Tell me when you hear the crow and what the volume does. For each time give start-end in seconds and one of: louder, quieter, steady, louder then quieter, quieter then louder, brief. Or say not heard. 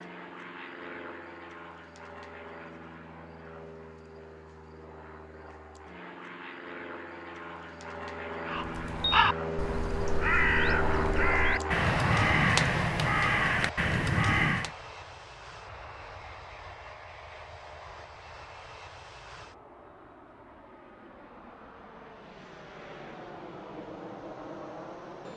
8.4-14.7 steady.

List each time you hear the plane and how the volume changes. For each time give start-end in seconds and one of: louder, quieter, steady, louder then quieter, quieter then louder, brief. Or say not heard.
0.0-25.3 louder then quieter.